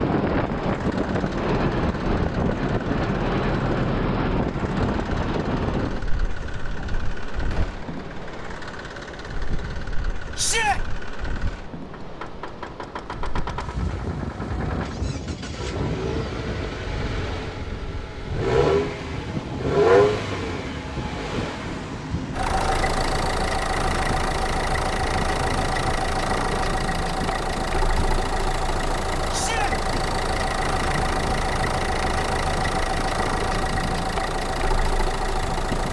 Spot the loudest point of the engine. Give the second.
20 s.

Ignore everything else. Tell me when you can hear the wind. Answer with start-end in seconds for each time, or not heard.
0.0-35.8.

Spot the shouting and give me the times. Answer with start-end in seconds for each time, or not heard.
10.3-10.8, 29.3-29.8.